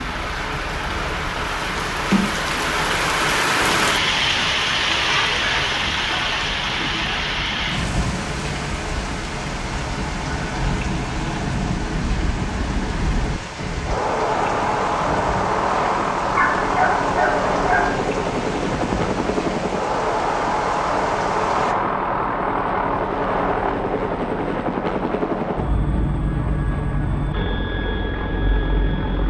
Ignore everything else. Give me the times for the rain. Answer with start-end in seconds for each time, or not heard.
0.0-21.8.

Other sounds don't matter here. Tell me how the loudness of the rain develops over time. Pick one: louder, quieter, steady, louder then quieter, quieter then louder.
quieter.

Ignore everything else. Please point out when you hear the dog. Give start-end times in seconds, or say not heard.
16.2-17.9.